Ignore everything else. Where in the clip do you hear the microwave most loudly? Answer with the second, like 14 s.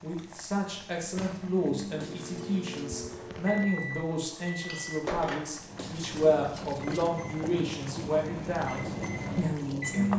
10 s.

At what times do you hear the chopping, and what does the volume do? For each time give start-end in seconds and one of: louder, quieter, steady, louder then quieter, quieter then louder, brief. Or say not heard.
not heard.